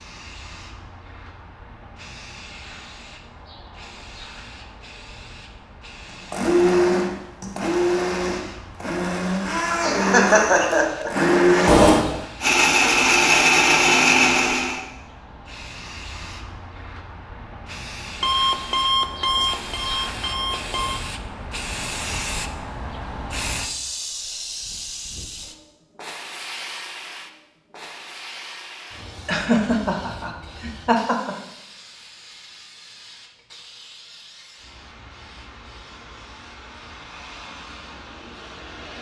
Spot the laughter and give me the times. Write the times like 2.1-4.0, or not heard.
9.8-11.1, 29.2-31.4.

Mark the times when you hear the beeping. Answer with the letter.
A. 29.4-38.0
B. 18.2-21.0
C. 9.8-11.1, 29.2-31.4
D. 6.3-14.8
B.